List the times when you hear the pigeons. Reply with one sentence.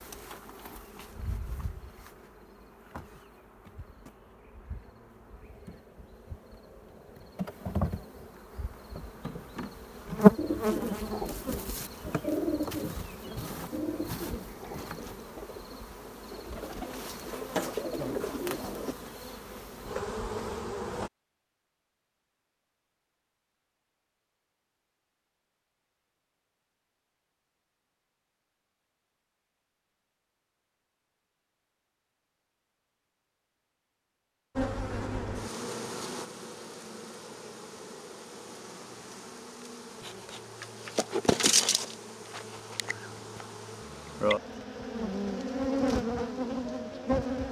You can hear the pigeons from 10.3 to 18.9 s.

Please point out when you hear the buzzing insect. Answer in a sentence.
You can hear the buzzing insect from 0.0 to 21.1 s and from 34.5 to 47.4 s.